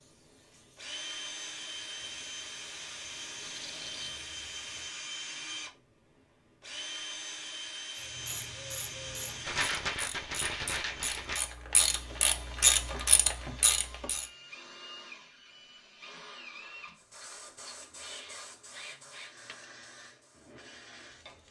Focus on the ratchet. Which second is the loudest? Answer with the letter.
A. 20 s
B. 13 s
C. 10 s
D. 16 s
B.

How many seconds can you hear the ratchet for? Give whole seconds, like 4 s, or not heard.
6 s.